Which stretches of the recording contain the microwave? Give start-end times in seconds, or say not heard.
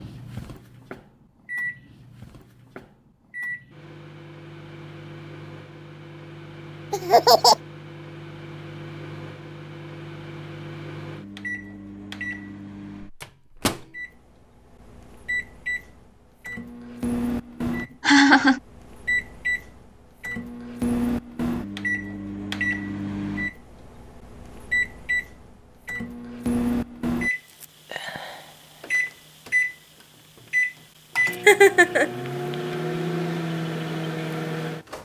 0.0-35.0.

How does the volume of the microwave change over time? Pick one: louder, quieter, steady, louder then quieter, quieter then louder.
louder.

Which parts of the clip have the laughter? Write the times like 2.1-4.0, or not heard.
6.9-7.5, 17.6-18.6, 31.4-32.1.